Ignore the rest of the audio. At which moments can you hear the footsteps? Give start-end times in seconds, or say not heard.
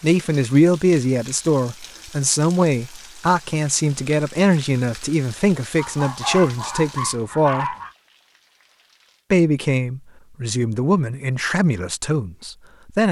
not heard.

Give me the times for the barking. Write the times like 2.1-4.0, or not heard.
5.8-8.0.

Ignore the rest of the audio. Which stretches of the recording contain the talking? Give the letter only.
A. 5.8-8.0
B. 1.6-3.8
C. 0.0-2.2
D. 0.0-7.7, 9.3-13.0
D.